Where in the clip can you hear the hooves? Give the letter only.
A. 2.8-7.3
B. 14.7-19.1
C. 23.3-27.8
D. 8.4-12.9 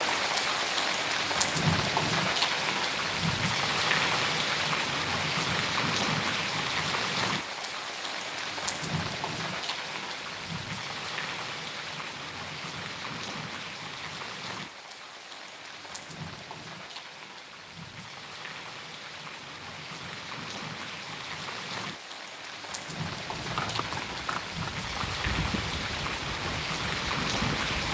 C.